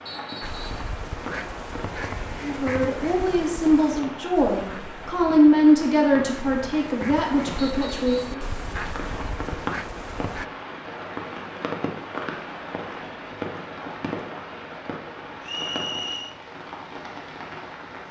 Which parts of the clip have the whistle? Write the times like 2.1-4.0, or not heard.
0.1-0.8, 7.5-8.4, 15.4-16.4.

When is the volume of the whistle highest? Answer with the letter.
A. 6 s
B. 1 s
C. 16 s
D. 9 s
C.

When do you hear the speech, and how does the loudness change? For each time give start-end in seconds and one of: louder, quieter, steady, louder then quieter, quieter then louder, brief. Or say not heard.
2.4-8.4 louder then quieter.